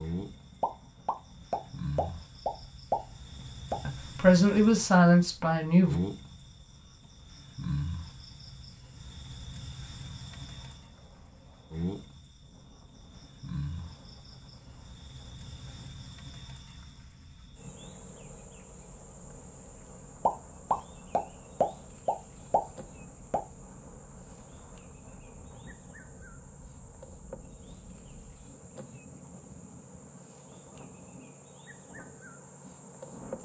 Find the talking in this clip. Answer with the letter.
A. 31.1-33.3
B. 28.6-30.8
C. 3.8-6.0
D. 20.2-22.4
C.